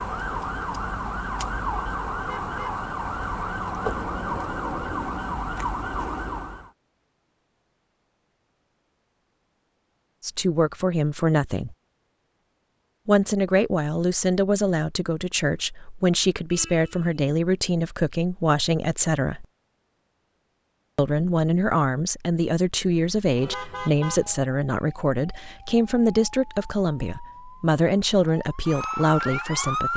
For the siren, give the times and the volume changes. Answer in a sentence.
The siren can be heard from 0.0 to 6.7 s, at a steady volume; and from 23.4 to 29.9 s, getting louder.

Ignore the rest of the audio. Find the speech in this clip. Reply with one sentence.
The speech can be heard from 10.2 to 11.8 s, from 13.1 to 19.4 s and from 20.9 to 29.9 s.